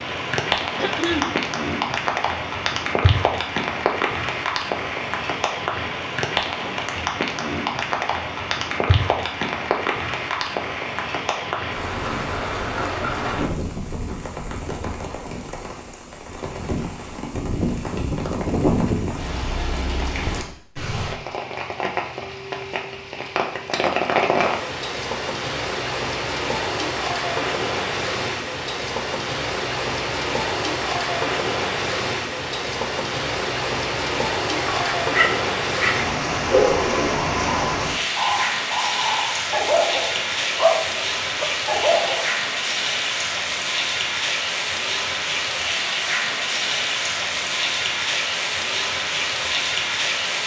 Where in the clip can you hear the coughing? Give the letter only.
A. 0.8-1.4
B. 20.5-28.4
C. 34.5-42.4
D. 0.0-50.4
A.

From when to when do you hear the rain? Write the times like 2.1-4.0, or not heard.
0.0-50.4.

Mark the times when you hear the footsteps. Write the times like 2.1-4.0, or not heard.
not heard.